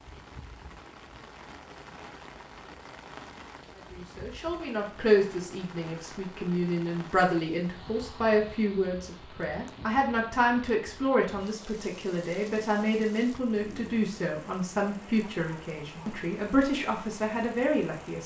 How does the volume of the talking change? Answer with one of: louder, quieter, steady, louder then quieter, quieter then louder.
steady.